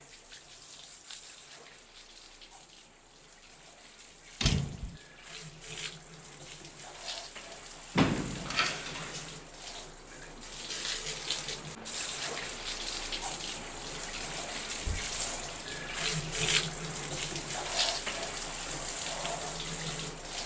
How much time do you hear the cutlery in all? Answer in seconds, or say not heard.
not heard.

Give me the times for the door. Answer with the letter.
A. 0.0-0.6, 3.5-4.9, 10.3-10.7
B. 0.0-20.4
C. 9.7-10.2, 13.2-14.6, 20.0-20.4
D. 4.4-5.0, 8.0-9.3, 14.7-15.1
D.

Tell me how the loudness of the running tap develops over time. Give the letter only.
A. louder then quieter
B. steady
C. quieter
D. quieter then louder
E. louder
E.